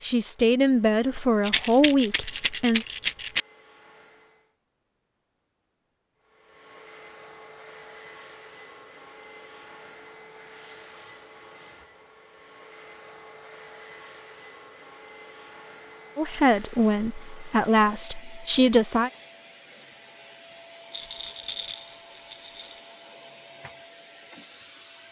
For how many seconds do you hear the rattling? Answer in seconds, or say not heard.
4 s.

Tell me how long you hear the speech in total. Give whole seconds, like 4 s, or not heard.
6 s.